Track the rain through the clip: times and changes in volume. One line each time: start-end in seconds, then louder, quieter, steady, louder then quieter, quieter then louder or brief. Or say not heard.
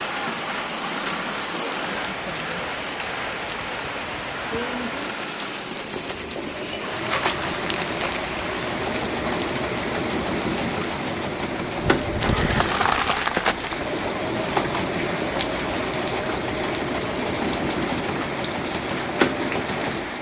0.0-20.1 steady.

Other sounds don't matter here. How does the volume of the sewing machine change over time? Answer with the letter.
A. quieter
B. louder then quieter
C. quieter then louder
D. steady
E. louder
E.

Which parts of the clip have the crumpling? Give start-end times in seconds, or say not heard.
7.0-8.2, 12.2-13.8.